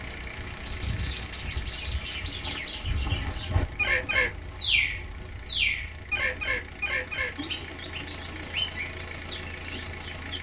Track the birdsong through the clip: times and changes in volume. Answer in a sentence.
You can hear the birdsong from 0.1 to 10.3 s, getting louder then quieter.